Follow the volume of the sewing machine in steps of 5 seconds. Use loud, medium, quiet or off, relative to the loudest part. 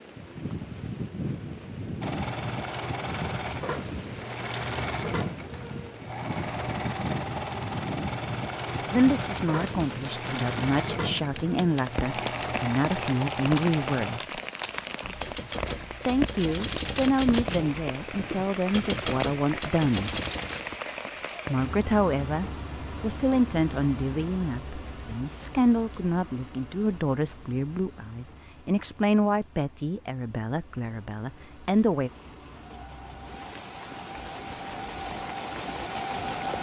loud, loud, loud, off, off, off, medium, loud.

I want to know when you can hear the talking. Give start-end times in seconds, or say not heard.
8.9-14.4, 16.1-20.1, 21.4-32.1.